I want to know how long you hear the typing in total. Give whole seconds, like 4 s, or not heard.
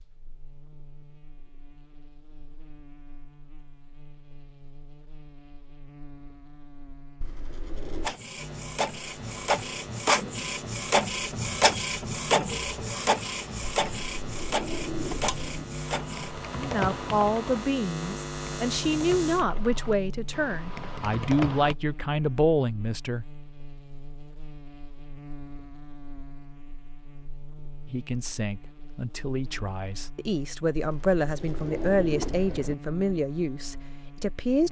6 s.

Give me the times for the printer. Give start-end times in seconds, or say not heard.
8.0-16.3.